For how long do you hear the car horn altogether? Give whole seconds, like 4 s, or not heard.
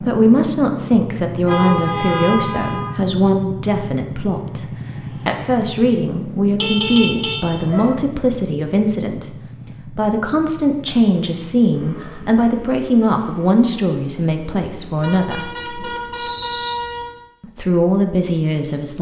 5 s.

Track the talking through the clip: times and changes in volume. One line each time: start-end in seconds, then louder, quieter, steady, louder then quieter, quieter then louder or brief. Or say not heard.
0.0-15.5 steady
17.4-18.9 brief.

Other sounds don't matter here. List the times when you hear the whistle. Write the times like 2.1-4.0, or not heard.
16.1-16.8.